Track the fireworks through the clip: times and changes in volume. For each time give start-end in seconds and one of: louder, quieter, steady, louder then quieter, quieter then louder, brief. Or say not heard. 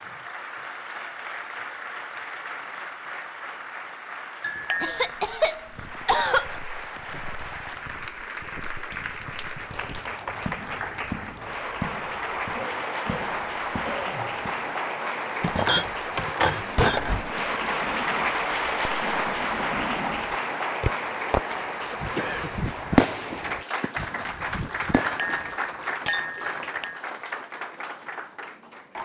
17.1-25.6 louder then quieter.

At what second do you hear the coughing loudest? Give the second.
6 s.